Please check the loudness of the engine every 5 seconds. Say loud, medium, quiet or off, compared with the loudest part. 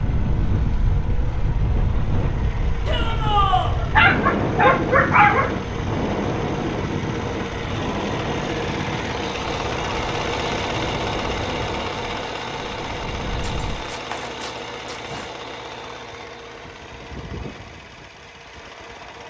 medium, loud, loud, medium.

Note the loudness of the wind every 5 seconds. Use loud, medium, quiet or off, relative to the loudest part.
loud, loud, medium, off.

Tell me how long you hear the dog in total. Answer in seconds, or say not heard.
4 s.